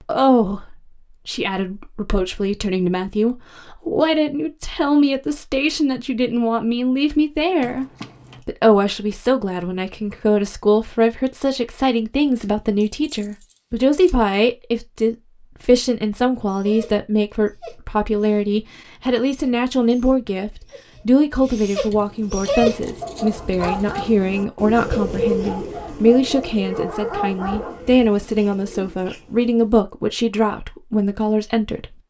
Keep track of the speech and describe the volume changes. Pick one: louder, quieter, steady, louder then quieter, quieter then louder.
steady.